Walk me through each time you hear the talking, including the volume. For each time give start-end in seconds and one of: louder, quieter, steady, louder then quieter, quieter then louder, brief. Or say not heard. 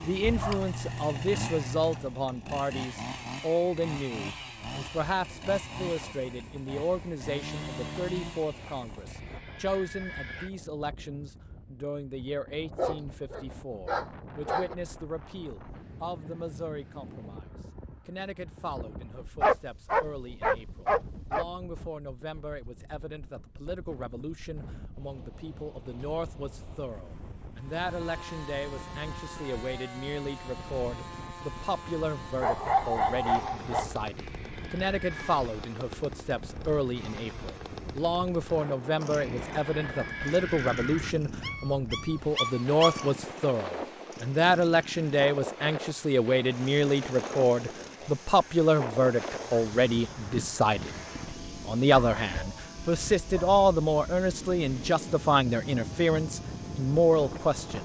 0.0-57.8 quieter then louder.